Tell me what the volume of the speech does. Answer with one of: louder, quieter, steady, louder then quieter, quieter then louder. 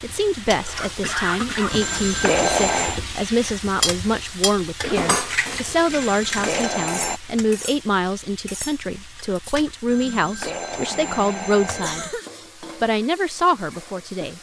steady.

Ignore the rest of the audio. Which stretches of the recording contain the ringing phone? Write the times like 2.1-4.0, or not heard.
1.7-3.0, 5.8-7.2, 9.8-12.2.